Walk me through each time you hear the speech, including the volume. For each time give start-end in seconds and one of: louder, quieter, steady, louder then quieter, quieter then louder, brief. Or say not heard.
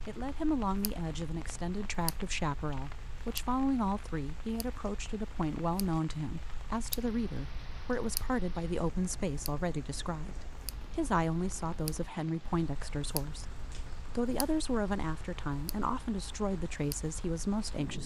0.1-18.0 steady.